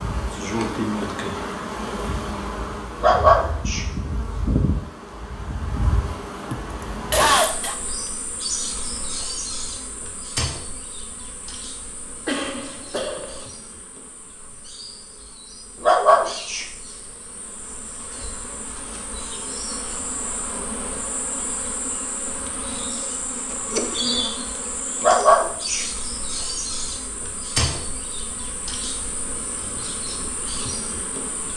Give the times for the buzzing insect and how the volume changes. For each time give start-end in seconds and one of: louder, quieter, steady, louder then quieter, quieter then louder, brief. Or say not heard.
0.0-31.5 quieter then louder.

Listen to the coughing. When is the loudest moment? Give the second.
7 s.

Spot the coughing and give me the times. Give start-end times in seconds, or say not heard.
6.5-7.8, 12.2-13.4, 23.5-24.2.